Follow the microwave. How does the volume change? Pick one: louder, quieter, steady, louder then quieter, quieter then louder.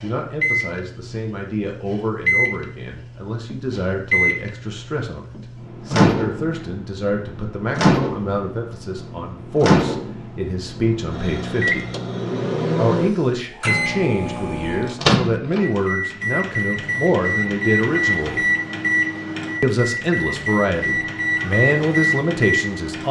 steady.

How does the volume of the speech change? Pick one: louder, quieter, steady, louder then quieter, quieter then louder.
louder.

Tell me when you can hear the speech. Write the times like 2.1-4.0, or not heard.
0.0-11.8, 12.8-18.4, 19.6-23.0.